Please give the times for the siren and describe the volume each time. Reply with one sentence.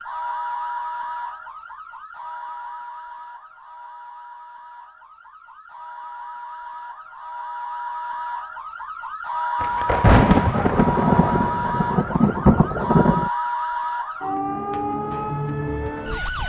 You can hear the siren from 0.0 to 16.4 s, getting quieter then louder.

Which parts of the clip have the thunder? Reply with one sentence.
The thunder can be heard from 9.6 to 13.3 s.